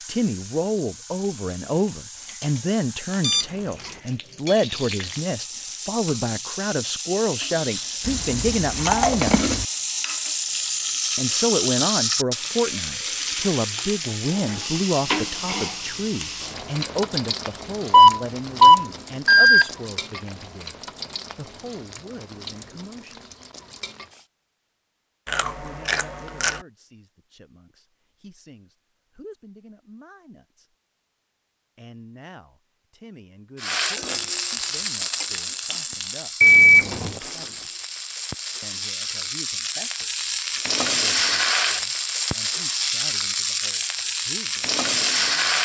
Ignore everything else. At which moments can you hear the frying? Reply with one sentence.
The frying can be heard from 0.0 to 24.2 s and from 33.5 to 45.6 s.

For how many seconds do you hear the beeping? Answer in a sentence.
The beeping can be heard for 3 seconds in total.